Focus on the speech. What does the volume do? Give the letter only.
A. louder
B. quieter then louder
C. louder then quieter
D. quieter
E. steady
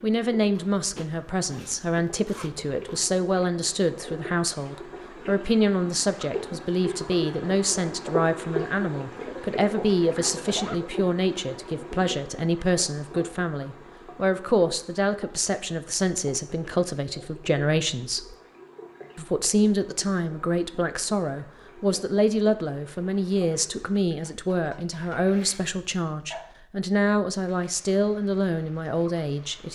E.